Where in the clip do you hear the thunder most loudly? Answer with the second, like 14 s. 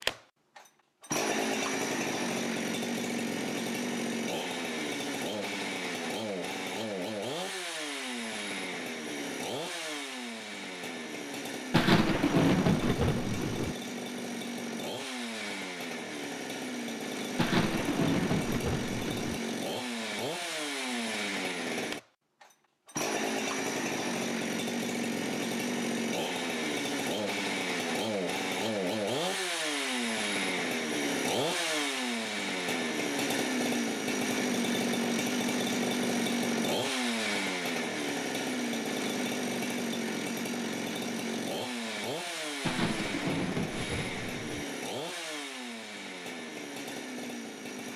13 s.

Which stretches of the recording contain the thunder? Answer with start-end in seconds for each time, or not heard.
11.7-13.8, 17.4-19.4, 42.6-44.6.